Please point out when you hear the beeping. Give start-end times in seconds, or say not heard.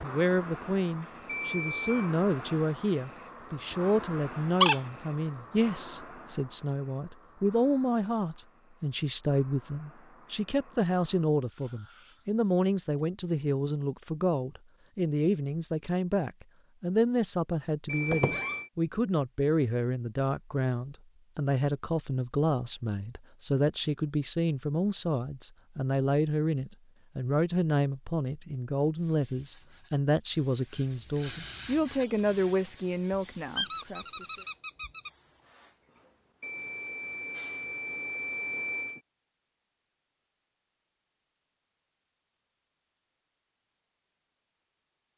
1.2-2.1, 17.9-18.7, 36.4-39.0.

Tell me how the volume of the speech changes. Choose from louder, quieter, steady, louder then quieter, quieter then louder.
steady.